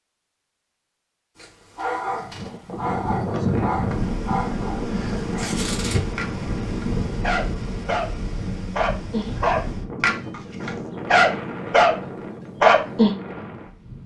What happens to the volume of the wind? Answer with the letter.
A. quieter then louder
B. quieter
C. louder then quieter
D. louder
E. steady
B.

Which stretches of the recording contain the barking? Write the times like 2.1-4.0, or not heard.
1.4-8.1, 8.8-11.9, 12.6-13.2.